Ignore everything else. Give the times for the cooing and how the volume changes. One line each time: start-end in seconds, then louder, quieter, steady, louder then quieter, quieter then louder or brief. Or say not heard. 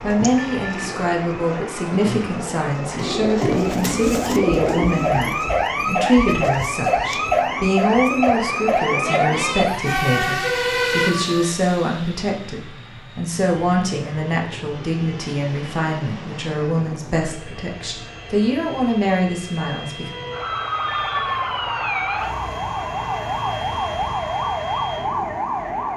0.0-7.2 louder then quieter.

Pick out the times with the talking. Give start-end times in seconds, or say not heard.
0.0-20.1.